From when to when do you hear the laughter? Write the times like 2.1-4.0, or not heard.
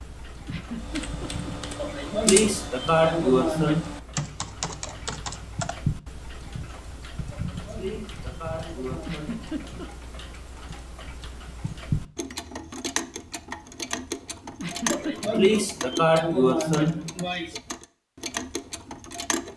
0.5-1.5, 9.1-9.9, 14.6-15.6.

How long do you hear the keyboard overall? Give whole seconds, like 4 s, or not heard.
5 s.